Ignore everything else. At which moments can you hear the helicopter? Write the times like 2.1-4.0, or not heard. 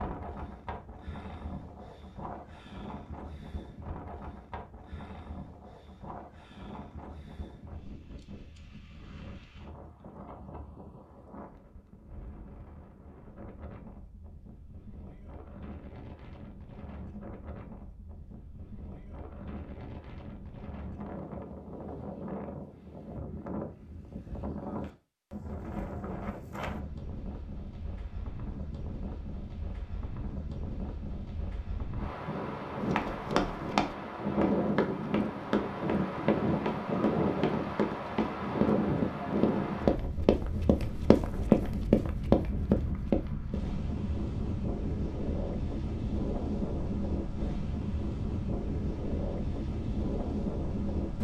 not heard.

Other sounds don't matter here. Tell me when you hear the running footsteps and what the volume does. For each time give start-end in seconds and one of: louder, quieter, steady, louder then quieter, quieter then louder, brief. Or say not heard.
32.9-43.8 louder.